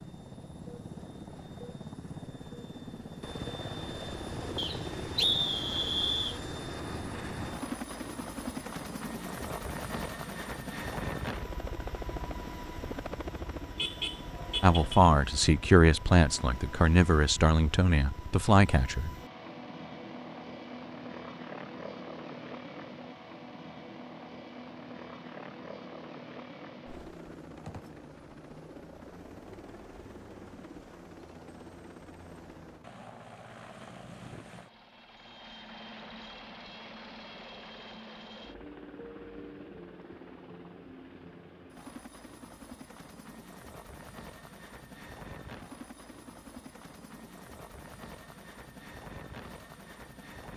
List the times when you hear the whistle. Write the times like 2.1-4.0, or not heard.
4.5-6.4.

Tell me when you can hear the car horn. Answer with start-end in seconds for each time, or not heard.
13.8-15.0.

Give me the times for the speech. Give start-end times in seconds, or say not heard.
14.6-19.1.